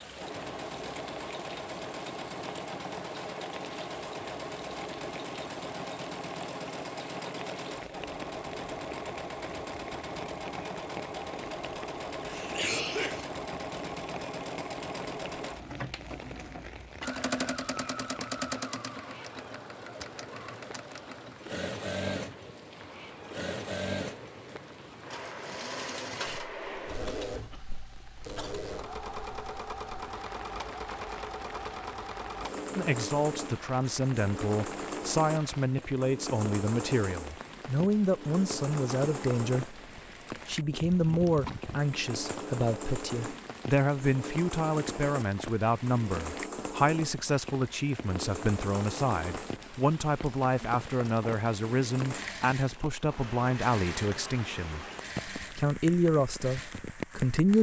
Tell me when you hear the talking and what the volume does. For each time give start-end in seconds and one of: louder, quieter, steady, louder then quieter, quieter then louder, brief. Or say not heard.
32.8-39.8 steady
40.5-57.5 steady.